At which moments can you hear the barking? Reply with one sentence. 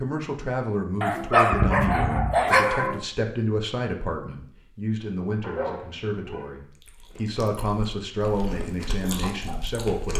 The barking can be heard from 1.0 to 3.0 s and from 5.4 to 6.5 s.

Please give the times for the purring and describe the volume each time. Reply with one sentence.
The purring can't be heard in this clip.